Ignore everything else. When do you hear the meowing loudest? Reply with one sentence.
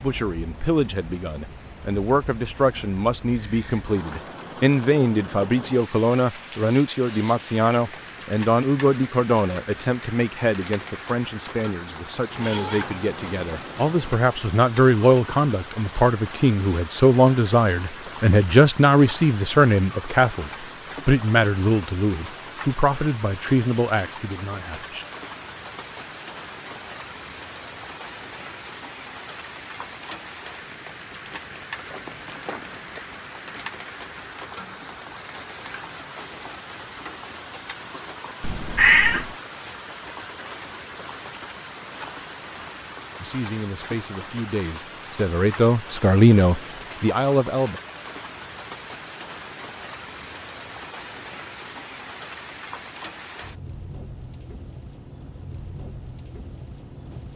The volume of the meowing peaks at 39 seconds.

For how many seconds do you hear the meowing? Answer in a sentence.
The meowing can be heard for 4 seconds in total.